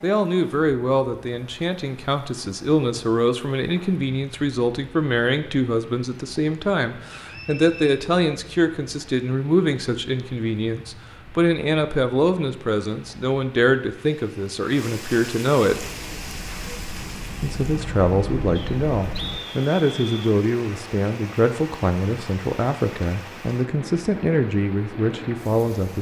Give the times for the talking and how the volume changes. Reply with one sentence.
The talking can be heard from 0.0 to 15.8 s, at a steady volume; and from 17.4 to 25.9 s, at a steady volume.